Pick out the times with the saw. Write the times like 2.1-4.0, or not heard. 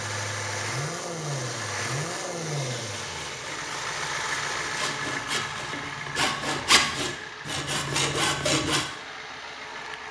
2.9-8.8.